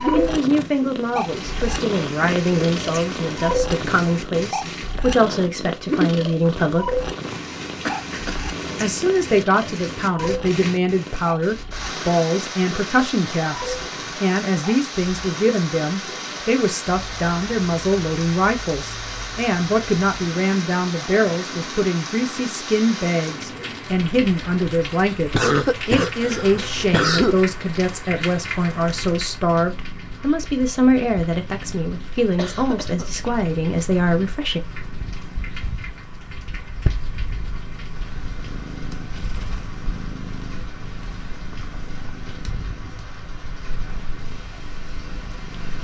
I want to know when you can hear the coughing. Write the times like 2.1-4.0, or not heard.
7.8-8.4, 25.3-27.4, 32.4-33.3.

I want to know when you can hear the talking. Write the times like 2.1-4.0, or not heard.
0.0-7.0, 8.8-34.6.